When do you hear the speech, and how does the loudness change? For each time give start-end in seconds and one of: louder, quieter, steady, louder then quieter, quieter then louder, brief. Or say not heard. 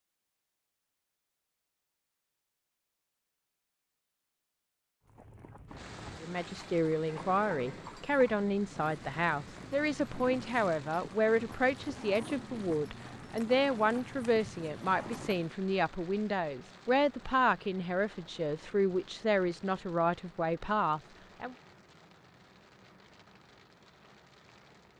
6.2-21.6 steady.